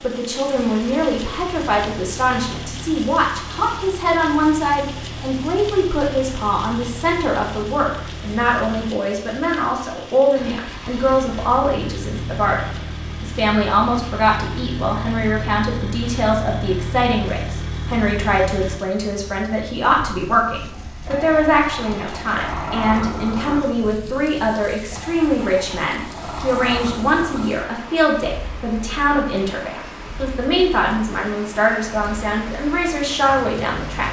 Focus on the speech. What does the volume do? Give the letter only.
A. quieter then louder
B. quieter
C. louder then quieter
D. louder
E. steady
E.